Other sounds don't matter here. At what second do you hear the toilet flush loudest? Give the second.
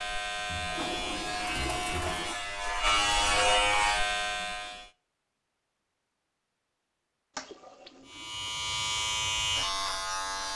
2 s.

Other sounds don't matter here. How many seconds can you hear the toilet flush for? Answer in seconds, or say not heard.
3 s.